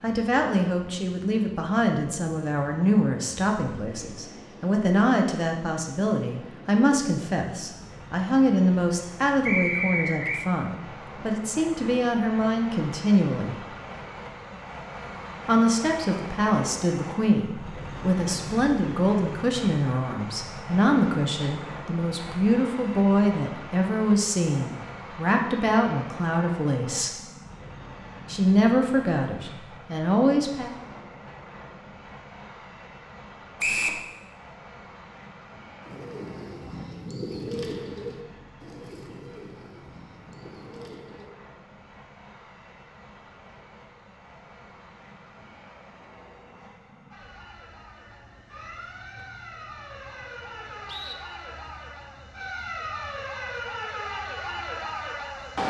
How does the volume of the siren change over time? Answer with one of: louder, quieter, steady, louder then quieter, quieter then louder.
louder.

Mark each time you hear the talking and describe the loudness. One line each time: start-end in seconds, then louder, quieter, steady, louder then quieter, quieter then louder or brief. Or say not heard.
0.0-13.6 steady
15.4-27.1 steady
28.2-30.7 brief.